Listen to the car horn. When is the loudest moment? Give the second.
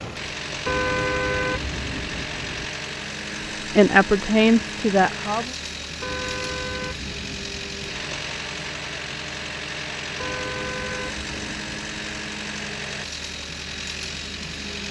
1 s.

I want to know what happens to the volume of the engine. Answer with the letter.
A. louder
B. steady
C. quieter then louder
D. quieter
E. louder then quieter
B.